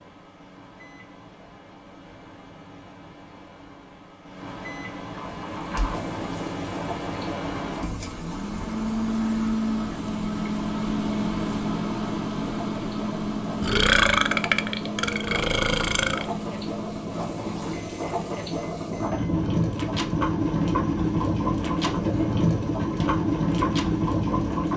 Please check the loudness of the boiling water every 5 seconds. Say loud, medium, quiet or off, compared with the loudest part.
off, quiet, quiet, medium, loud.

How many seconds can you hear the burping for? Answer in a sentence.
You can hear the burping for 3 seconds altogether.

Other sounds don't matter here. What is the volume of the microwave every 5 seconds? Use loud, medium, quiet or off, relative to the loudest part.
quiet, loud, loud, medium, medium.